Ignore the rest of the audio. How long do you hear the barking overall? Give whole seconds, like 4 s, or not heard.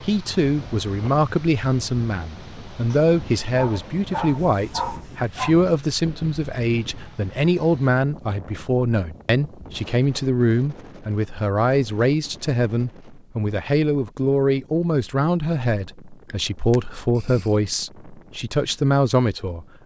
4 s.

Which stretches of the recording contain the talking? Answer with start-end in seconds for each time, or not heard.
0.0-19.6.